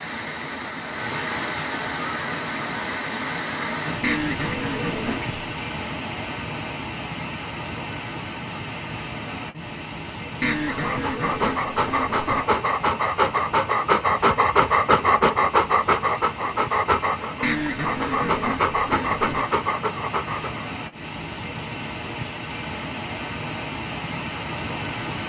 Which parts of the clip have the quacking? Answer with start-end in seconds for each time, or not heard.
4.0-5.3, 10.4-12.4, 17.4-19.4.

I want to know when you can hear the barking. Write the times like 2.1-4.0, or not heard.
10.6-20.6.